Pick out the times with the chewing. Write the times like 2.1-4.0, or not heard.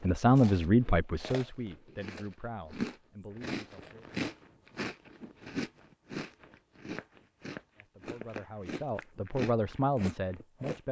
0.0-10.8.